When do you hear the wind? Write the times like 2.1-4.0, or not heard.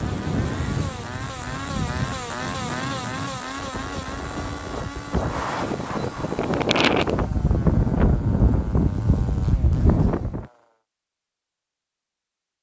0.0-10.4.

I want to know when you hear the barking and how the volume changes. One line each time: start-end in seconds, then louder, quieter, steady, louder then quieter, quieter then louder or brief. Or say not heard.
not heard.